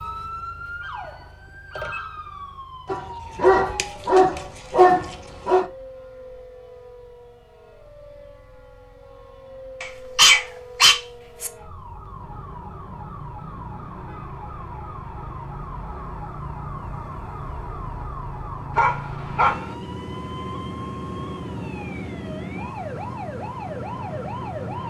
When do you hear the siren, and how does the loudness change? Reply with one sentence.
You can hear the siren from 0.0 to 24.8 s, getting quieter then louder.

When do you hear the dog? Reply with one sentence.
The dog can be heard from 2.9 to 5.7 s, from 9.8 to 11.5 s and from 18.8 to 19.7 s.